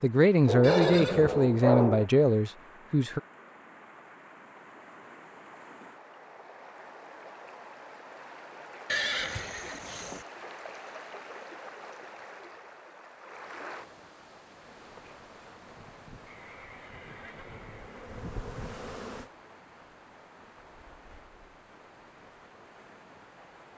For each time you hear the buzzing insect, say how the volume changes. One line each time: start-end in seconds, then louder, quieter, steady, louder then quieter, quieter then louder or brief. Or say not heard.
14.6-19.3 louder.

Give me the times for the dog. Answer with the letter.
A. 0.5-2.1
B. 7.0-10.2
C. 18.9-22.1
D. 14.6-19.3
A.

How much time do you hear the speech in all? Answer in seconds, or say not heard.
3 s.